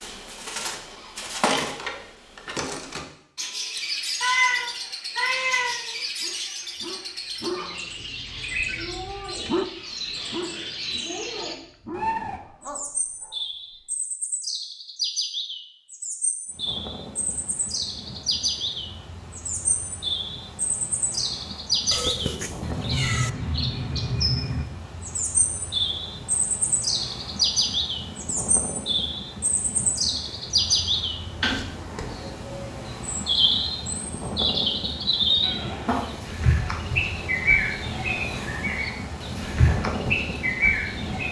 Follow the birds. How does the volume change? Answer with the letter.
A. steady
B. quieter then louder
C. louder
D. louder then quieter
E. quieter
C.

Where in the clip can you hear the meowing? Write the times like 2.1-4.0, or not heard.
3.8-6.0, 21.9-23.3, 35.4-36.0.